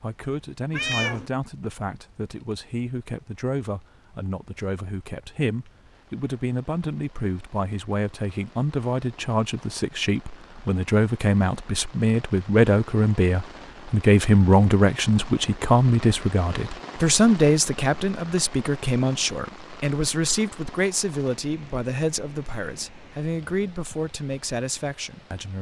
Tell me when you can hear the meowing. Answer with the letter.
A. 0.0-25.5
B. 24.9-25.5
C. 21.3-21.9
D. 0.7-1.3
D.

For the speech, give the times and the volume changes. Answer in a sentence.
You can hear the speech from 0.0 to 25.5 s, getting louder then quieter.